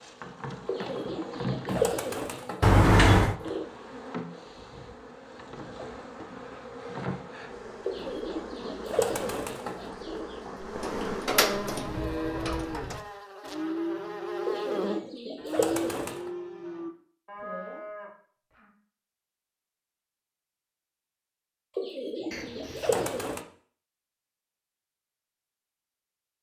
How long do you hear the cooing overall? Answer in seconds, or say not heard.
9 s.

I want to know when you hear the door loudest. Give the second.
3 s.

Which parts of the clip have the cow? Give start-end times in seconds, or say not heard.
11.7-18.7.